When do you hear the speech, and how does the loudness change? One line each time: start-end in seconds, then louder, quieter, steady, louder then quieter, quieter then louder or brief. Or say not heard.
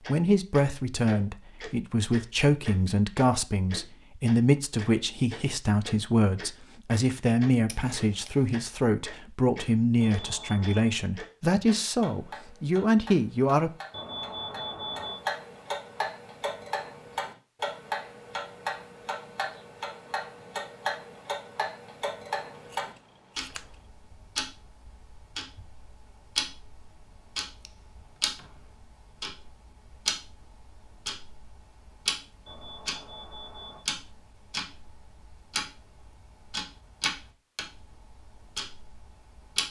0.1-13.7 steady.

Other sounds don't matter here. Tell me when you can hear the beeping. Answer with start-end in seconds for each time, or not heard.
10.0-10.9, 13.9-15.2, 32.5-33.9.